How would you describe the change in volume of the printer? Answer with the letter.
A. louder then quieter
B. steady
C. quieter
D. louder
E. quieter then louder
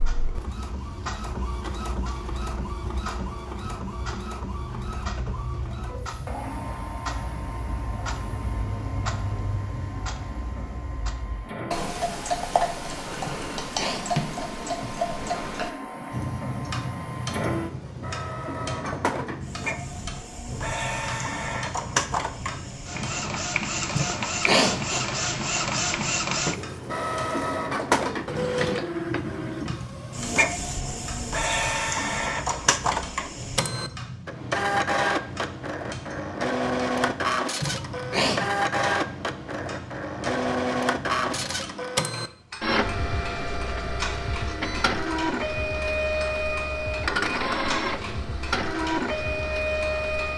D.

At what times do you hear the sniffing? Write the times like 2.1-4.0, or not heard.
13.2-14.1, 23.9-25.1, 37.6-38.4.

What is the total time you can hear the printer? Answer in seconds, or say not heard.
50 s.